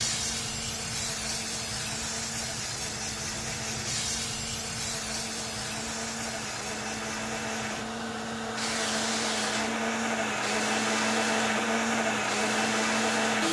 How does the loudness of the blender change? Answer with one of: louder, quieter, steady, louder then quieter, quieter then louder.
louder.